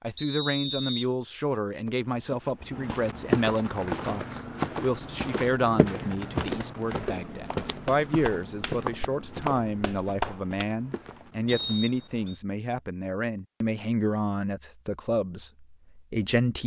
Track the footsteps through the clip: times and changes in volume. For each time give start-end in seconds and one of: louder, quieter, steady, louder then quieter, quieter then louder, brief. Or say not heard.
1.9-11.9 quieter.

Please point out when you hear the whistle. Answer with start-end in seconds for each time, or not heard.
0.1-1.1, 11.4-12.4.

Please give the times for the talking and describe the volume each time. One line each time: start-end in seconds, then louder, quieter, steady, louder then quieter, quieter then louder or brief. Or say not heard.
0.0-16.6 steady.